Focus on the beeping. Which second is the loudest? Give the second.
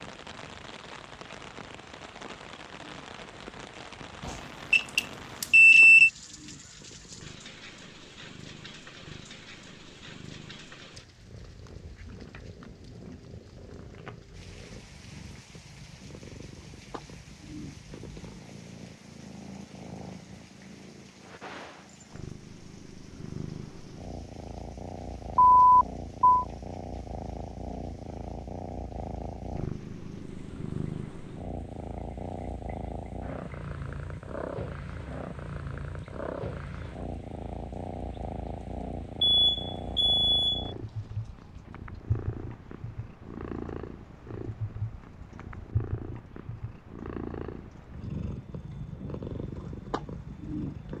6 s.